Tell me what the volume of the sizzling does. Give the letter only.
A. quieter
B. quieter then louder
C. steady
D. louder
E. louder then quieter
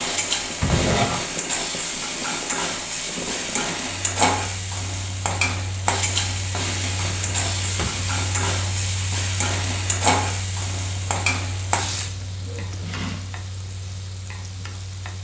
A.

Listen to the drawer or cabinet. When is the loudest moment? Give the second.
1 s.